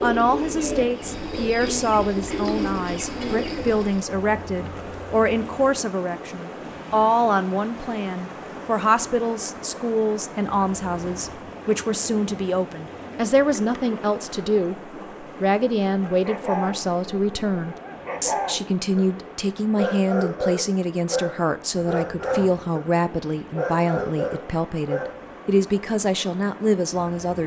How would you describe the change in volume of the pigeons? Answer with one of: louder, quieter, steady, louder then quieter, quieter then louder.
quieter.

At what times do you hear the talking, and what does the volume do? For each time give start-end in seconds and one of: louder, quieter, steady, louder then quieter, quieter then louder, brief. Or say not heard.
0.0-27.4 steady.